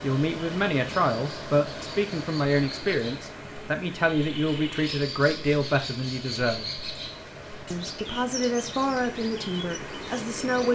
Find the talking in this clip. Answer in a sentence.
The talking can be heard from 0.0 to 6.7 s and from 7.7 to 10.6 s.